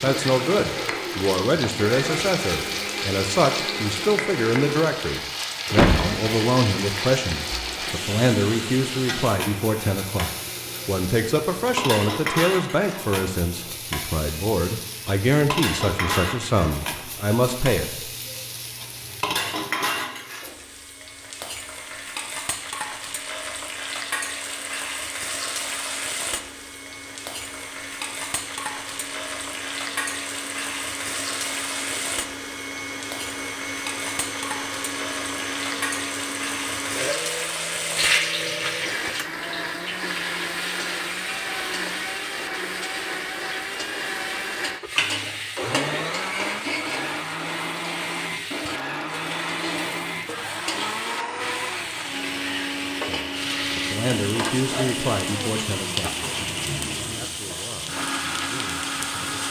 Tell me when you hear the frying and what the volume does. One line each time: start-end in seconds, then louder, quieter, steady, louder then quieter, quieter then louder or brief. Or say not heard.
0.0-59.4 steady.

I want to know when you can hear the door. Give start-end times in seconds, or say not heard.
5.8-6.2.